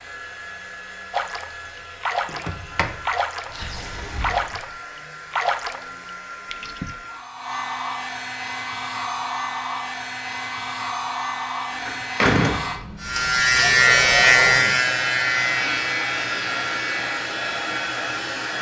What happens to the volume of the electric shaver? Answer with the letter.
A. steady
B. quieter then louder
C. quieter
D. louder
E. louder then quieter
C.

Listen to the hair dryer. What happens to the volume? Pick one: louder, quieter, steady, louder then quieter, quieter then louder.
louder.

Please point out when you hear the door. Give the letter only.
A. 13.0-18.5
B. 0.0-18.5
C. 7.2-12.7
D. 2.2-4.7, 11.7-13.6
D.